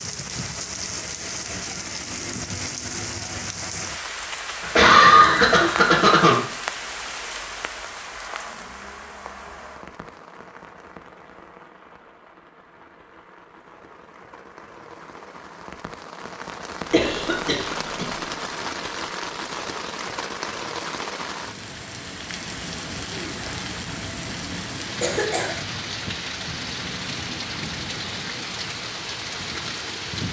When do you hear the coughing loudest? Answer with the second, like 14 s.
5 s.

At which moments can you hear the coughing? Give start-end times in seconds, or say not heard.
4.6-6.3, 16.9-18.1, 25.0-25.6.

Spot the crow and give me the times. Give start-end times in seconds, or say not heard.
not heard.